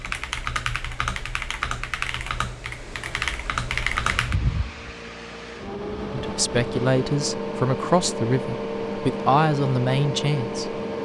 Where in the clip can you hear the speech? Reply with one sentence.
The speech can be heard from 6.1 to 10.8 s.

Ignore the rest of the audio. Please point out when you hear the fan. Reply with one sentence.
You can hear the fan from 4.0 to 11.0 s.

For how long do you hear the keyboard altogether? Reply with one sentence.
The keyboard can be heard for 4 seconds in total.